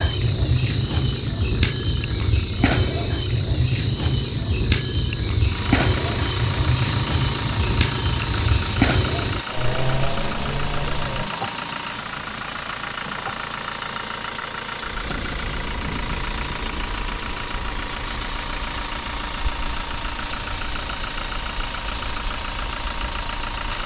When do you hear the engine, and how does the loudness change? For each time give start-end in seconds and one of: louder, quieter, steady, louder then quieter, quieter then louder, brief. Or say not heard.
0.1-23.8 louder.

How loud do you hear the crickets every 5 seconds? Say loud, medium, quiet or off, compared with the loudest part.
loud, loud, medium, quiet, quiet.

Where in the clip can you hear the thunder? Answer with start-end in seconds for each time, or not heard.
15.1-16.8.